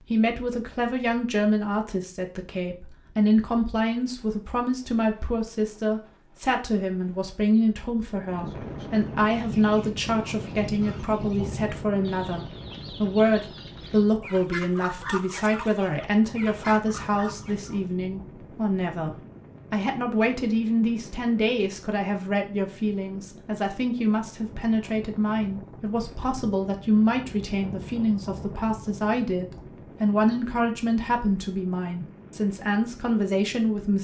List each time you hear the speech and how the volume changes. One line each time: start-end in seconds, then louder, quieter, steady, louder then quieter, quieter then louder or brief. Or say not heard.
0.1-33.9 steady.